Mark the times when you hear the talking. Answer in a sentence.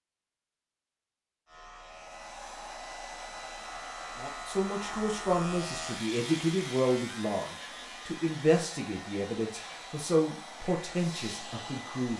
The talking can be heard from 4.2 to 12.1 s.